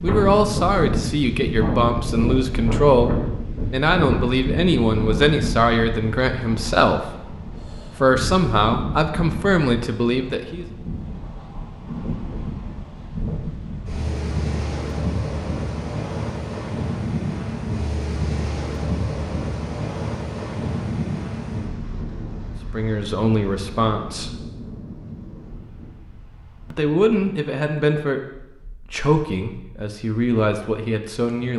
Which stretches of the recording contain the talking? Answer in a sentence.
The talking can be heard from 0.0 to 10.7 s, from 22.7 to 24.4 s and from 26.7 to 31.5 s.